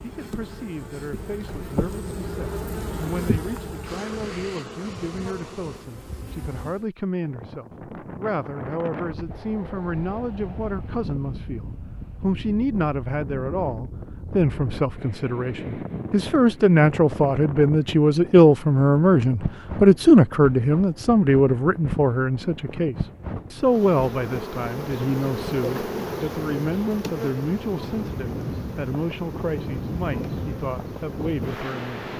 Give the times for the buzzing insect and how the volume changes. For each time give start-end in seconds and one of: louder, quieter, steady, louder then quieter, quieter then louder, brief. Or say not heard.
0.0-6.8 louder then quieter
23.6-32.1 quieter.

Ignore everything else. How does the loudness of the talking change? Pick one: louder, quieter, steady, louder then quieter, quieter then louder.
louder then quieter.